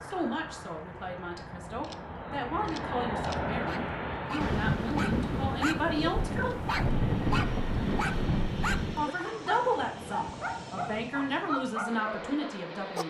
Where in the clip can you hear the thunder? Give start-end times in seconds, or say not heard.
4.4-9.1.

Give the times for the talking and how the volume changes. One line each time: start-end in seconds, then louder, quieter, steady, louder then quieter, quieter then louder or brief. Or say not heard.
0.0-6.5 louder
8.9-13.0 quieter then louder.